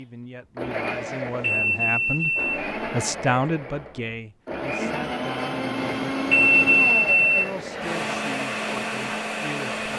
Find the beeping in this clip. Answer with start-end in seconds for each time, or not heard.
0.9-2.7, 5.8-8.0.